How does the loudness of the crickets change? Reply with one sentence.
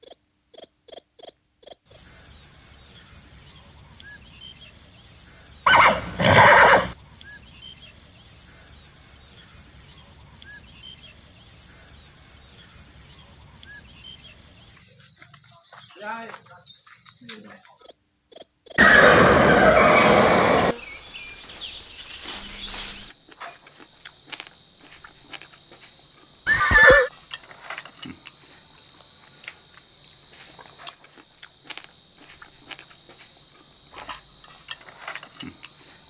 The loudness of the crickets stays about the same.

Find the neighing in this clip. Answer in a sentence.
You can hear the neighing from 5.7 to 7.0 s, from 18.8 to 20.8 s and from 26.4 to 27.1 s.